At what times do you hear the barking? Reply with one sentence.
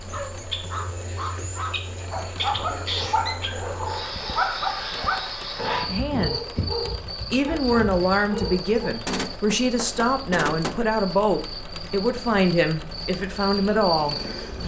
You can hear the barking from 0.1 to 8.8 s.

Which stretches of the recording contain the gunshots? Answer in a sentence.
You can hear the gunshots from 9.1 to 10.8 s.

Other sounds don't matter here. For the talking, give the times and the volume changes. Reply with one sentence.
The talking can be heard briefly from 5.8 to 6.4 s; and from 7.3 to 14.6 s, at a steady volume.